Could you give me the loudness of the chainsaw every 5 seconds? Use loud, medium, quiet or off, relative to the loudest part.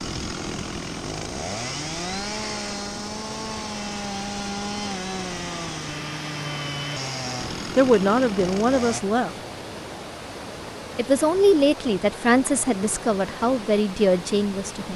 loud, loud, off.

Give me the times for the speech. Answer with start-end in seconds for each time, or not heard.
7.8-9.3, 10.9-14.9.